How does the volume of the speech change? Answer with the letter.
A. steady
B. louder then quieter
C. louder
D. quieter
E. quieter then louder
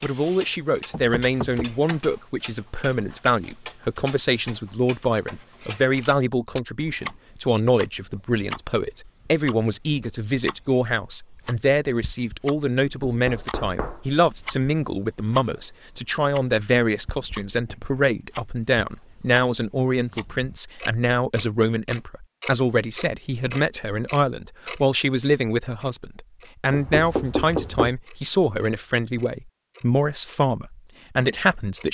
A.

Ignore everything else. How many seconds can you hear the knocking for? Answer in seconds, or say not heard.
4 s.